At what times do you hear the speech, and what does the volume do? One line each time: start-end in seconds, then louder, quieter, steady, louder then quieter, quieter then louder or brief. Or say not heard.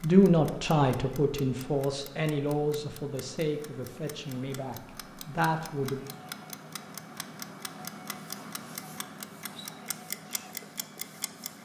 0.0-6.0 quieter then louder.